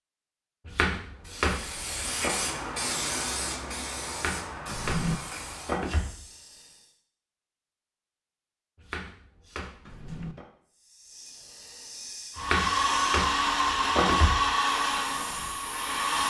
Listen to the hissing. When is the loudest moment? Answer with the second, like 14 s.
3 s.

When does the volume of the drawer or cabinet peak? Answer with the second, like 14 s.
5 s.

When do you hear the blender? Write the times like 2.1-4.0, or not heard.
12.3-16.2.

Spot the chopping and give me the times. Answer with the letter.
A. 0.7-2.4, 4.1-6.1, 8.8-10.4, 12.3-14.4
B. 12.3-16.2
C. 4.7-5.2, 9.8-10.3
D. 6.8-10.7
A.